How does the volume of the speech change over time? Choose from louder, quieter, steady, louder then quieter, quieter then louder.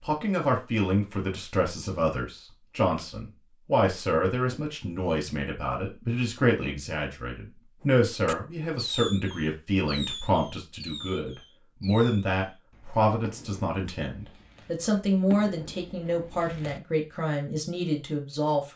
steady.